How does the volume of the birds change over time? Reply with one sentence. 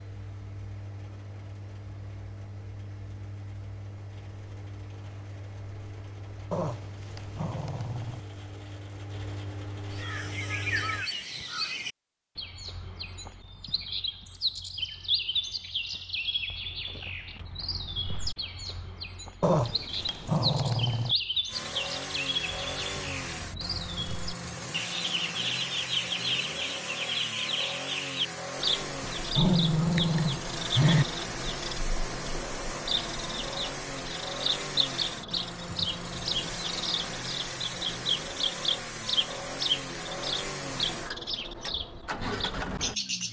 The volume of the birds stays about the same.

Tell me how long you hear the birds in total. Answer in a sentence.
You can hear the birds for 33 seconds altogether.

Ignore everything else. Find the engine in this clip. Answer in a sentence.
The engine can be heard from 0.0 to 11.1 s and from 21.4 to 43.2 s.